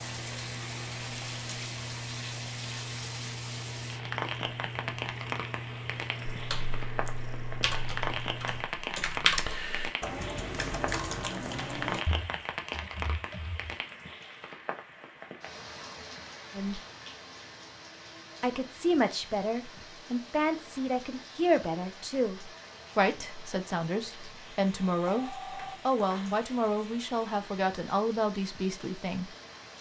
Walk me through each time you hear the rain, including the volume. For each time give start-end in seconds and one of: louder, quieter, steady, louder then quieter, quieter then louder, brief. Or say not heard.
0.0-29.7 quieter.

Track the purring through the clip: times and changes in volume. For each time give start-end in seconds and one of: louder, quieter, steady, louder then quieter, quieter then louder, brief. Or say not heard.
0.0-8.7 steady.